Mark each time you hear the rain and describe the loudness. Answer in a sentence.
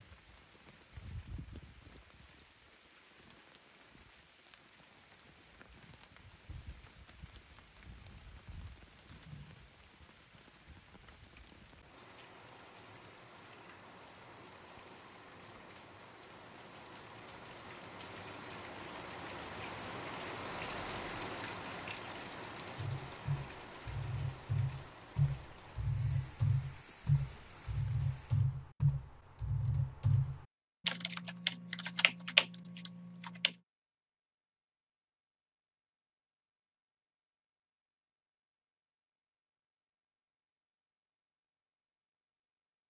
The rain can be heard from 0.0 to 28.5 s, getting louder then quieter.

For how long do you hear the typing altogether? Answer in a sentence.
The typing can be heard for 11 seconds in total.